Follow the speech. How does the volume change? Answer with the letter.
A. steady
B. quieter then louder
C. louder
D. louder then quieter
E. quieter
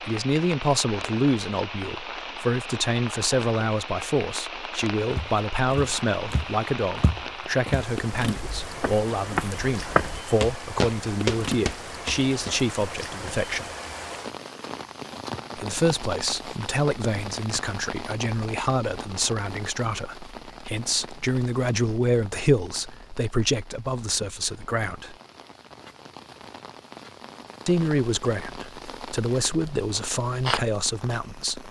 A.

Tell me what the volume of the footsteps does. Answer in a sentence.
The loudness of the footsteps goes up.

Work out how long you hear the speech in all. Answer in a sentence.
The speech can be heard for 27 seconds in total.